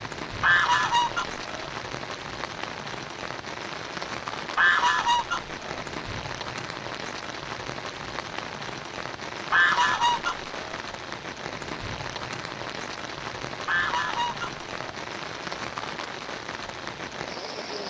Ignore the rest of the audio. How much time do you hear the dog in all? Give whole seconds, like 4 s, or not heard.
not heard.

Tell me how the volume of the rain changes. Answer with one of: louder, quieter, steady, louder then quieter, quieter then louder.
steady.